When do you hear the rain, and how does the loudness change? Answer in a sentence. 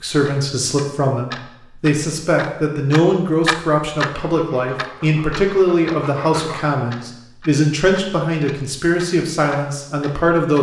You can't hear the rain here.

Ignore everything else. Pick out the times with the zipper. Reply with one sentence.
The zipper can't be heard in this clip.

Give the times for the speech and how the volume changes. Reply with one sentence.
The speech can be heard from 0.0 to 10.5 s, at a steady volume.